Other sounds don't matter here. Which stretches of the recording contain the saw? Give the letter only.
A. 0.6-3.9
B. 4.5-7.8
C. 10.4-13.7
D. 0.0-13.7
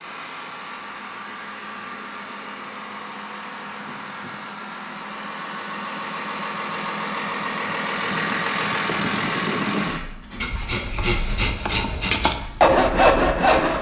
C.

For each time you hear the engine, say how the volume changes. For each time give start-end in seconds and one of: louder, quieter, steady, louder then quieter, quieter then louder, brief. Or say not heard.
0.0-13.7 louder then quieter.